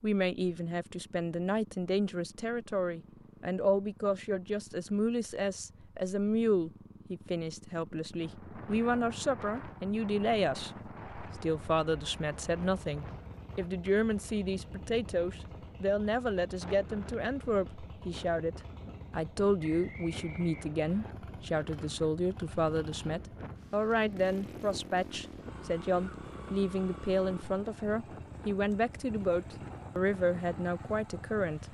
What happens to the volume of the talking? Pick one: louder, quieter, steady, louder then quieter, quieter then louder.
steady.